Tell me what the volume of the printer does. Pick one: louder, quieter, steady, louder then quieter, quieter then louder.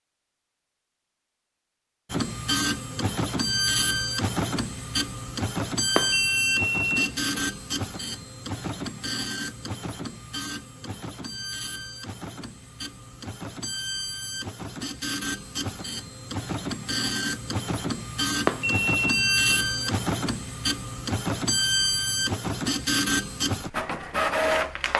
quieter then louder.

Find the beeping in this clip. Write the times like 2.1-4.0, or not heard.
6.0-7.3, 18.4-19.9.